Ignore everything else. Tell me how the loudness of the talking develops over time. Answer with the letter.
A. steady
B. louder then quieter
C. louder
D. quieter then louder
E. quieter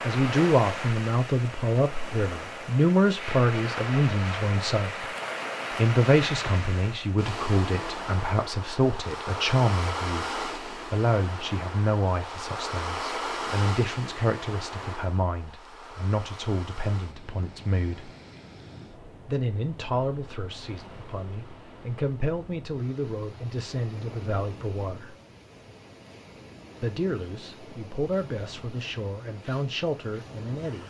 E.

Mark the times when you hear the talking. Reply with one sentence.
You can hear the talking from 0.0 to 5.0 s, from 5.8 to 18.1 s, from 19.2 to 25.1 s and from 26.8 to 30.8 s.